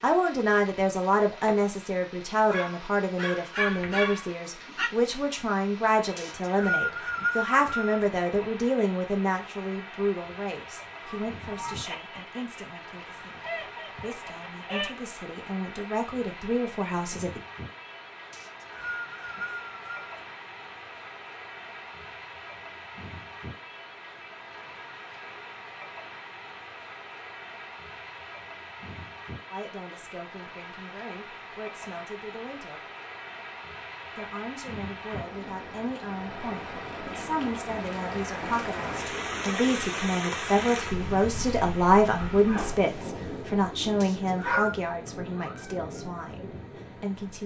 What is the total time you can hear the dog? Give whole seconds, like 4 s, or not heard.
5 s.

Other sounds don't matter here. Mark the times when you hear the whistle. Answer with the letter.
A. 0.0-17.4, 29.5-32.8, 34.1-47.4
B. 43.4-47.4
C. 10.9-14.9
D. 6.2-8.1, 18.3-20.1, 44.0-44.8
D.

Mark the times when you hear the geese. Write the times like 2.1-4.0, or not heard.
10.9-14.9.